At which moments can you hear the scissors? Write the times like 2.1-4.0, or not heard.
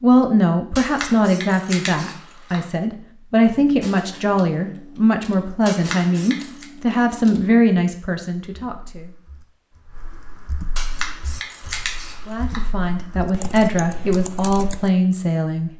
0.8-2.6, 5.7-6.7, 10.8-12.7.